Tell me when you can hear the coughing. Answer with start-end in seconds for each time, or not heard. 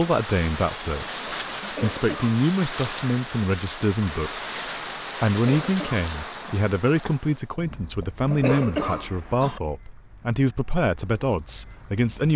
1.6-2.4, 5.3-6.7, 8.2-9.6.